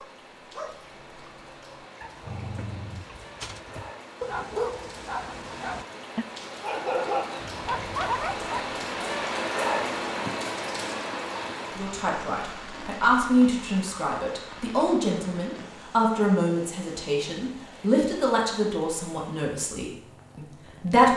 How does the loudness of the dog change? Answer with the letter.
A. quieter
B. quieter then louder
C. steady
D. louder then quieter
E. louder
E.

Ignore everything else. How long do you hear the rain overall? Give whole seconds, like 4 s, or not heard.
21 s.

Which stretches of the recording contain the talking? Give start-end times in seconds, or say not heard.
11.8-21.1.